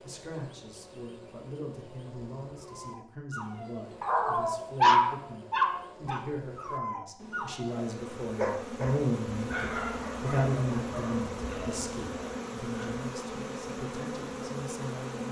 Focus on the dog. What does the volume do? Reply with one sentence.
The volume of the dog goes down.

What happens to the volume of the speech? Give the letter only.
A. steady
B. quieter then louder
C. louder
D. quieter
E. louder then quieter
E.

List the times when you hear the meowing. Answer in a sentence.
The meowing can't be heard in this clip.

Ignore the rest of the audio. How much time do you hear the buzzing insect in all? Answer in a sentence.
The buzzing insect can be heard for 15 seconds in total.